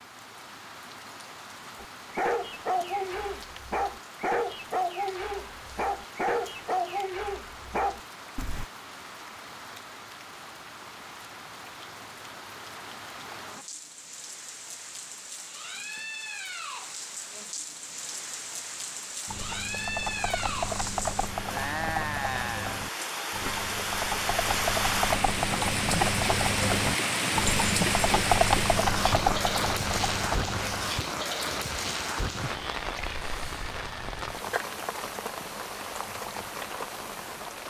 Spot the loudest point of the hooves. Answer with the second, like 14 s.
28 s.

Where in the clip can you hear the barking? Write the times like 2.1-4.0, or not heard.
1.8-8.7.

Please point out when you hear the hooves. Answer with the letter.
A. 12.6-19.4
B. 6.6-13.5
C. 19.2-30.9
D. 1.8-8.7
C.